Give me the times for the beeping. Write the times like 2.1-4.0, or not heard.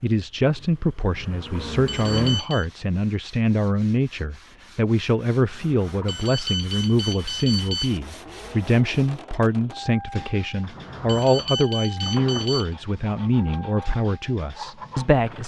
1.9-2.6, 6.0-8.0, 11.1-12.7.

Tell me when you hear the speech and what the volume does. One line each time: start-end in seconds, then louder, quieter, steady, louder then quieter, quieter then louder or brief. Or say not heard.
0.0-15.4 steady.